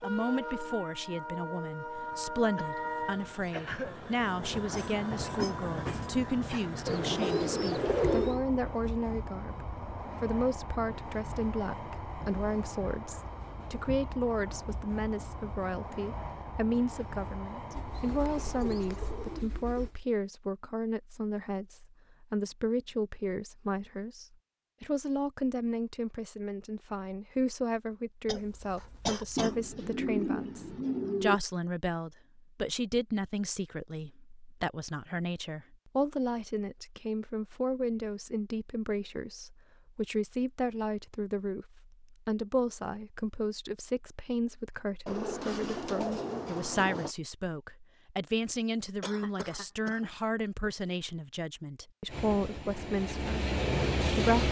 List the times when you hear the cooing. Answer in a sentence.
The cooing can be heard from 6.8 to 8.4 s, from 17.7 to 20.0 s, from 29.4 to 31.4 s and from 45.0 to 47.1 s.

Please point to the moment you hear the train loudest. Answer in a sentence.
The volume of the train peaks at 54 seconds.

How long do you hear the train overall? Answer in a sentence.
The train can be heard for 22 seconds in total.